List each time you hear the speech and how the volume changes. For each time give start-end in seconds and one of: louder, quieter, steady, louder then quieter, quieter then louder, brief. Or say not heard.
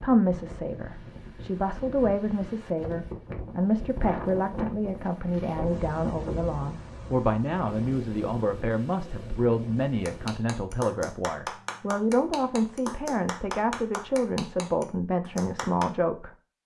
0.0-16.3 steady.